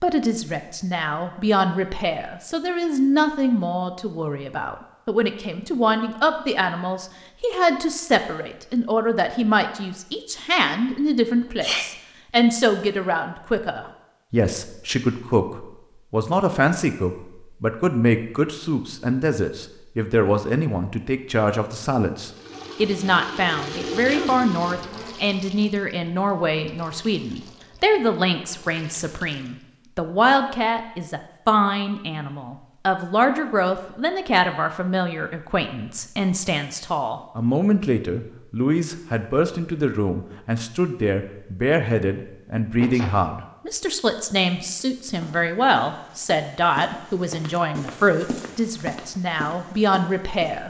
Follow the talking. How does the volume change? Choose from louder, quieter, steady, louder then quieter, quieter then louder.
steady.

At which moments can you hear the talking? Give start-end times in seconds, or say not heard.
0.0-50.6.